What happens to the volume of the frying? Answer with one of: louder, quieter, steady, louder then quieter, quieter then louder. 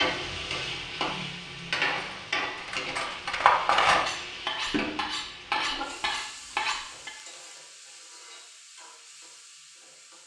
quieter.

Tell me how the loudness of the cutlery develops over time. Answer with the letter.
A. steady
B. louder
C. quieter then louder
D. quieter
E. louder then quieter
E.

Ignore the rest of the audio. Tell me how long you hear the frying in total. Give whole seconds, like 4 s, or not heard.
10 s.